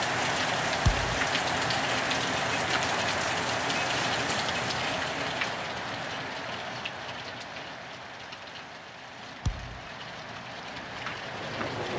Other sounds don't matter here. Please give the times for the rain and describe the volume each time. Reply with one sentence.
The rain can be heard from 0.0 to 11.9 s, getting quieter.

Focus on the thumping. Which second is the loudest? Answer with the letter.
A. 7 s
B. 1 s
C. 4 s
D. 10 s
B.